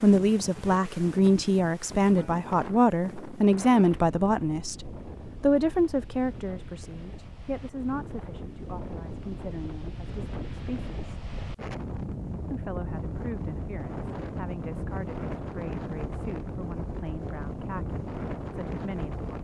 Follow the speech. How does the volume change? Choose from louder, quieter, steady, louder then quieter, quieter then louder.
quieter.